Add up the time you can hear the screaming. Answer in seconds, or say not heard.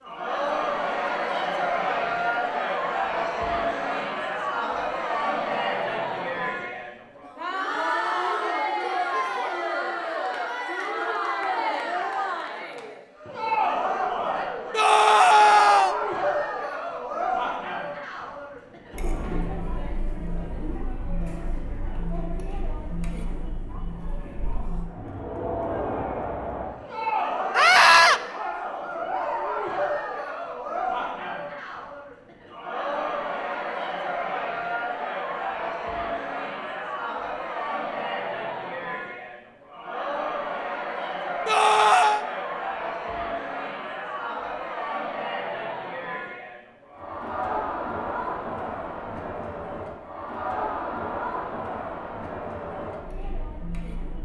3 s.